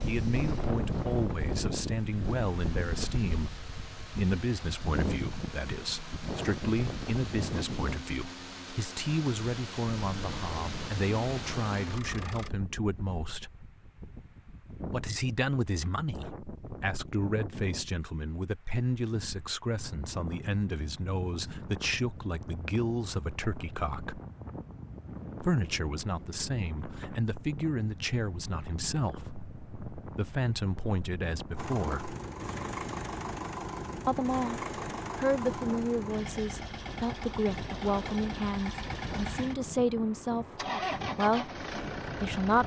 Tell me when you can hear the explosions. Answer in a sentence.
You can't hear the explosions here.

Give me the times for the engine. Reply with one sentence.
You can hear the engine from 0.0 to 12.5 s and from 31.6 to 42.6 s.